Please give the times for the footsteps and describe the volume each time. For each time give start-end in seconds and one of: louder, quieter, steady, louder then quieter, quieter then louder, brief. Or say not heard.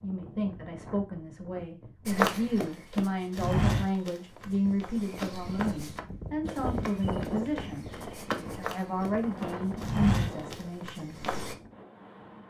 2.0-11.6 quieter then louder.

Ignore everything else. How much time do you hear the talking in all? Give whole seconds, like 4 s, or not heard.
11 s.